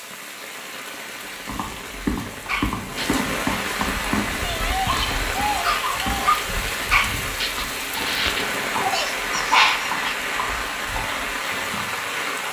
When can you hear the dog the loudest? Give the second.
10 s.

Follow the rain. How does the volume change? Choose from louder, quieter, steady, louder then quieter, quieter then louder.
louder.